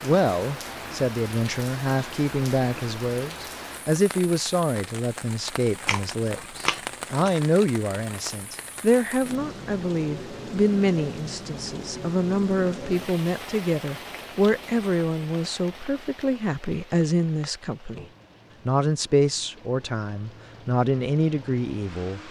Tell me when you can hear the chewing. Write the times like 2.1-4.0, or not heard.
5.8-7.3.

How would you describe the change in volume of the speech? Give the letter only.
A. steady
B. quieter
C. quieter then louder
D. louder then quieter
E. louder
A.